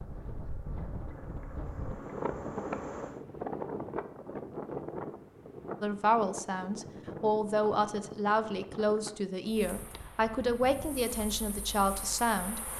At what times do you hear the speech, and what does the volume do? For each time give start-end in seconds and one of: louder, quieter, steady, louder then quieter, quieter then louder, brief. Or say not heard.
5.8-12.7 steady.